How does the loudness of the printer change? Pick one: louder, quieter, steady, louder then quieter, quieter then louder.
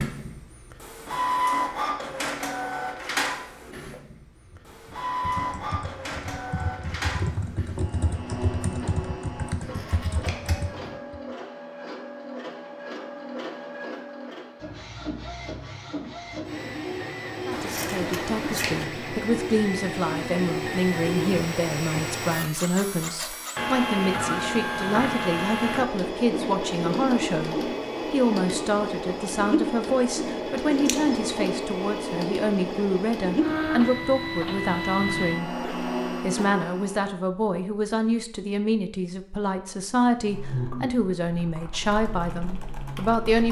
quieter then louder.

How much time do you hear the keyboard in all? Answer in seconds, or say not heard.
10 s.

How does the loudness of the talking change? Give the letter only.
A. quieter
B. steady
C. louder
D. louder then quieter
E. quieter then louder
B.